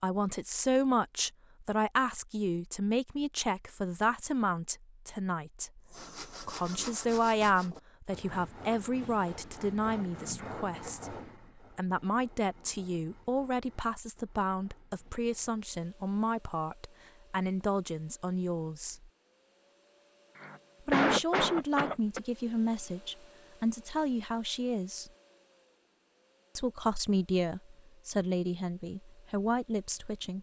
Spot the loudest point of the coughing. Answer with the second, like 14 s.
21 s.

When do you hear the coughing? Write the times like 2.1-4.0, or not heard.
10.3-11.1, 20.4-22.2.